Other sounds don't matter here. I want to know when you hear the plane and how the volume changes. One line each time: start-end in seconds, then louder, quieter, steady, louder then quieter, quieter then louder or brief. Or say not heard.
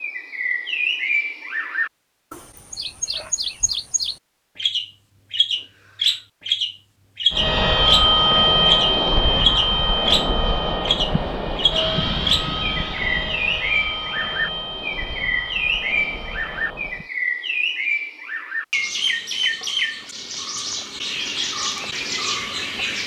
7.3-17.1 quieter.